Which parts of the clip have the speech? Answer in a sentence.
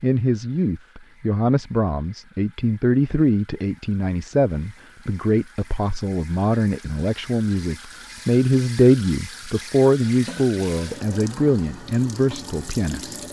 You can hear the speech from 0.0 to 13.2 s.